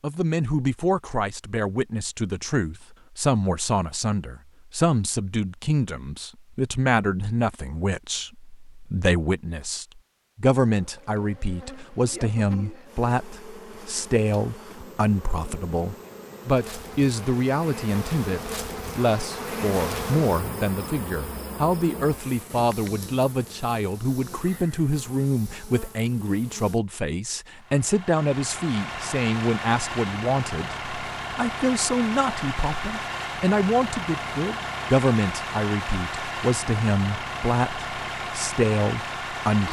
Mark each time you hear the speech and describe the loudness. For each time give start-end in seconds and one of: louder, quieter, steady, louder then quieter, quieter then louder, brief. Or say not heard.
0.0-39.6 steady.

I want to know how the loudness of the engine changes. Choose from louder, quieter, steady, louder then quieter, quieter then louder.
steady.